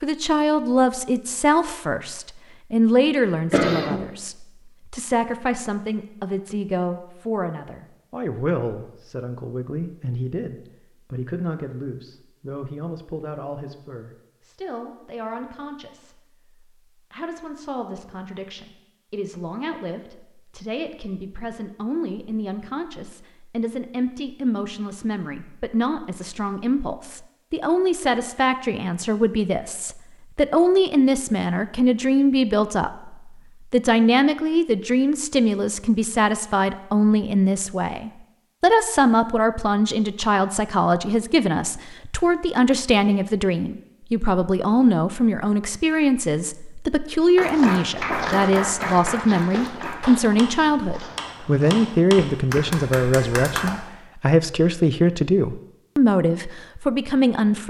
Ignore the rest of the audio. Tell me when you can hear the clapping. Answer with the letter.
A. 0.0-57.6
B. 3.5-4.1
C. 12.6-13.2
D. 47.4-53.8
D.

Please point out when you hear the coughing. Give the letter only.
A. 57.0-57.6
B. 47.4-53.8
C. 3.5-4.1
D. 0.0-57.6
C.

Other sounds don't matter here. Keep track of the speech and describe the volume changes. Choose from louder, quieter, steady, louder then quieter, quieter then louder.
quieter then louder.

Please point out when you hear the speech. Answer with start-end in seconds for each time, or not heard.
0.0-57.6.